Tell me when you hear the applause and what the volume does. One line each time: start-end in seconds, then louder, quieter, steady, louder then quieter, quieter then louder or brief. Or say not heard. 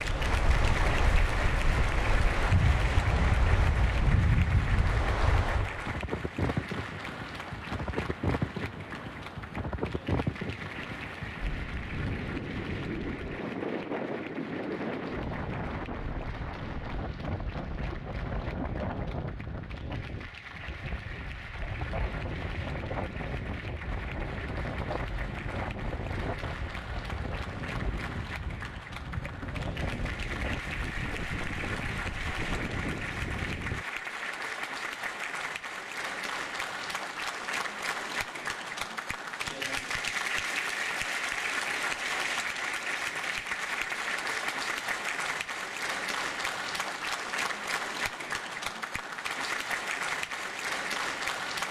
0.0-51.6 quieter then louder.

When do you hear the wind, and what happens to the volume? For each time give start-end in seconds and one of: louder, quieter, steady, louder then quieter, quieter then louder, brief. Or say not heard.
0.0-33.9 quieter.